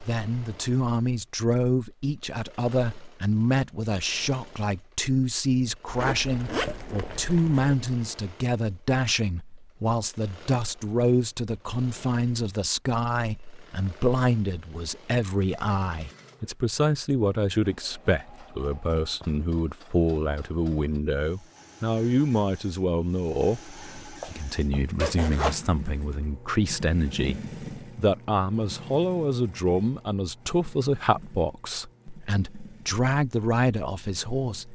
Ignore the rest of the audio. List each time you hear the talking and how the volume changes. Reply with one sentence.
The talking can be heard from 0.0 to 34.7 s, at a steady volume.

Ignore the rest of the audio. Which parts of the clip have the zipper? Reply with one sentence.
The zipper can be heard from 5.8 to 7.8 s, from 18.1 to 19.4 s and from 24.2 to 25.6 s.